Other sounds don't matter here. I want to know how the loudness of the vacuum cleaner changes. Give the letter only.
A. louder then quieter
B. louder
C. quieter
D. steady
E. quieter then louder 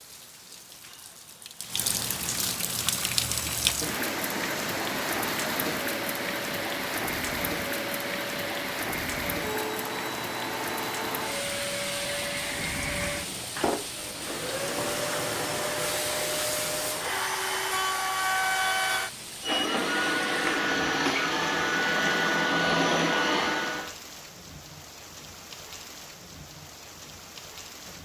B.